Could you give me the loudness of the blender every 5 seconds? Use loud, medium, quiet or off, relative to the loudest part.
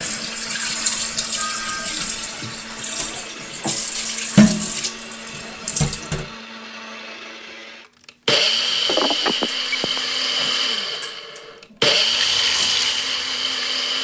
quiet, loud, loud.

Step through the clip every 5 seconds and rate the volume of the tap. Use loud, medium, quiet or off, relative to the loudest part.
loud, medium, medium.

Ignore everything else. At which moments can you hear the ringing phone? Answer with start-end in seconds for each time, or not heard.
1.4-3.8, 8.8-10.0.